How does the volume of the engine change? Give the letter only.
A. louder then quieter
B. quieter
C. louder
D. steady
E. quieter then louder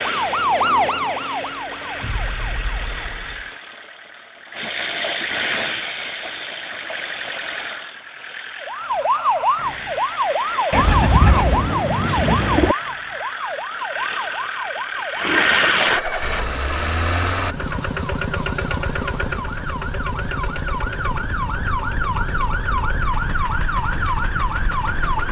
A.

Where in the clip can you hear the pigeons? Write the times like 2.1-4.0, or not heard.
10.7-12.8.